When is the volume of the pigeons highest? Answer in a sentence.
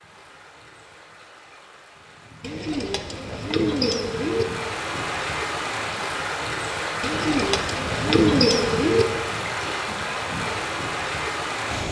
The volume of the pigeons peaks at 8 seconds.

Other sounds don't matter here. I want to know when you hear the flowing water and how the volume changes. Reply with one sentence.
The flowing water can be heard from 0.0 to 11.8 s, getting louder.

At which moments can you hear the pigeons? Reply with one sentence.
The pigeons can be heard from 2.4 to 4.5 s and from 7.0 to 9.1 s.